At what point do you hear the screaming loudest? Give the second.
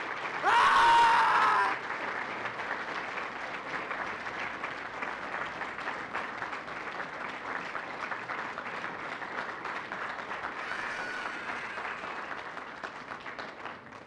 1 s.